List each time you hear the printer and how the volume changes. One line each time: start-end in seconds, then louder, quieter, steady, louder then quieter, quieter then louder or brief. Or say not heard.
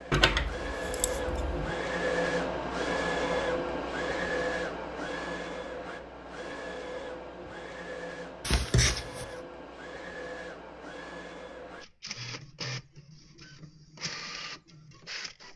0.0-15.5 quieter.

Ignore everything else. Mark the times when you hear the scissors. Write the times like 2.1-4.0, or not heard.
0.1-1.8, 8.4-9.2.